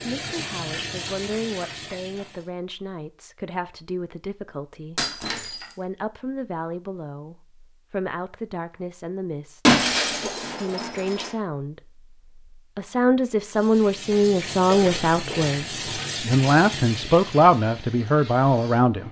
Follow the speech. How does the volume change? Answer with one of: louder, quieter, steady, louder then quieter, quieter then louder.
louder.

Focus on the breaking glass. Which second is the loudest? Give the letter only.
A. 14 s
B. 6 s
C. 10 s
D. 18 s
C.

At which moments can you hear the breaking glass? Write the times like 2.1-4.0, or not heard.
5.0-5.8, 9.7-11.3.